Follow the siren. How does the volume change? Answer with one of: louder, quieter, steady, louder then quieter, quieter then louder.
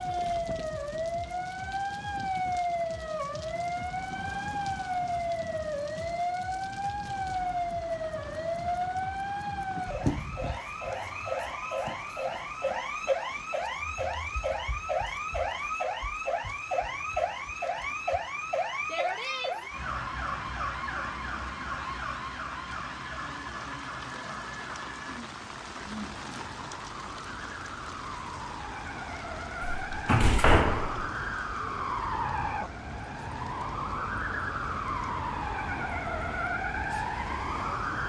quieter then louder.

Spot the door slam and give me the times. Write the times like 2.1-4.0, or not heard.
29.6-31.1.